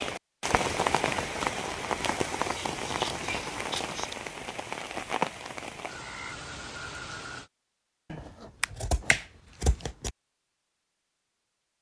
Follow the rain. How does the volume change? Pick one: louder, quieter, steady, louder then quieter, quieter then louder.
quieter.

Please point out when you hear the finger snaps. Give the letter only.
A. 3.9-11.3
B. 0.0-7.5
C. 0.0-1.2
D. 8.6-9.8
D.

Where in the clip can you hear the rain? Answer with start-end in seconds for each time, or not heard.
0.0-7.5.